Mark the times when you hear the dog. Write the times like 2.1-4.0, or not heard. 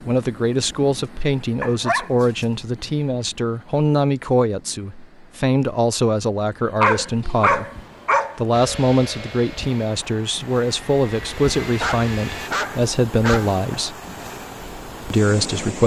1.6-2.1, 6.8-8.3, 11.8-13.6.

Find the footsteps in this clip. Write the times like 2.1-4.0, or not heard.
not heard.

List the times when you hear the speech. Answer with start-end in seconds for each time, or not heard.
0.1-7.7, 8.3-13.9, 15.1-15.8.